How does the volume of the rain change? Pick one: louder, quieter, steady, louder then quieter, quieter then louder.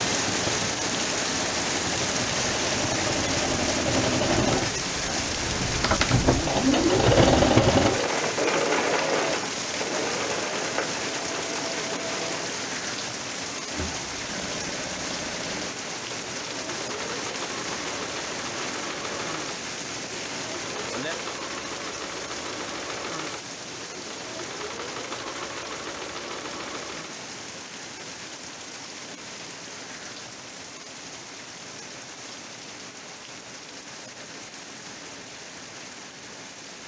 quieter.